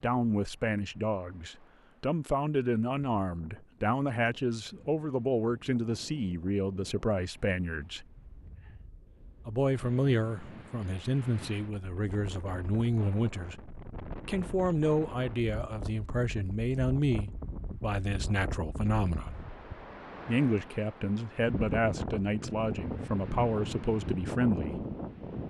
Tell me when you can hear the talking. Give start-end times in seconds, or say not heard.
0.0-8.1, 9.4-19.4, 20.2-24.9.